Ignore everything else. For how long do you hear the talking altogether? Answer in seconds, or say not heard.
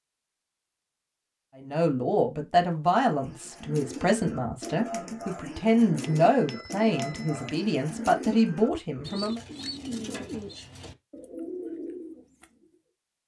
8 s.